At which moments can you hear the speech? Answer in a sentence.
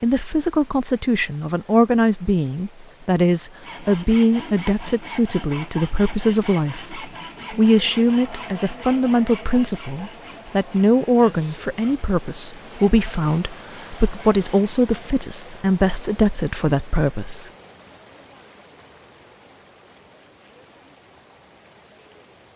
You can hear the speech from 0.0 to 17.5 s.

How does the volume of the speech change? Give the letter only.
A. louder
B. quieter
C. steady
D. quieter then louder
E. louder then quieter
C.